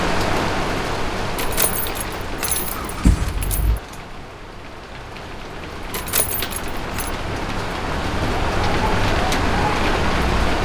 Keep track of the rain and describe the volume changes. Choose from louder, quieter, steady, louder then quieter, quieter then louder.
quieter then louder.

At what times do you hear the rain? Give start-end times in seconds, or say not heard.
0.0-10.6.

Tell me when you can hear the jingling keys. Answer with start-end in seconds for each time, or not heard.
1.4-3.8, 5.9-7.1.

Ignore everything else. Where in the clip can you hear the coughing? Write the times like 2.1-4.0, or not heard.
not heard.